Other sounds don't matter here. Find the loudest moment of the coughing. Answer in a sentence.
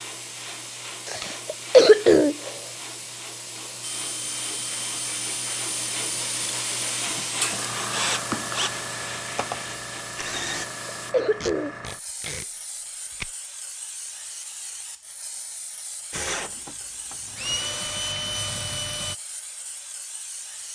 The loudest moment of the coughing is at 2 seconds.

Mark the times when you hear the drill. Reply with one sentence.
The drill can be heard from 3.8 to 10.7 s and from 16.1 to 19.1 s.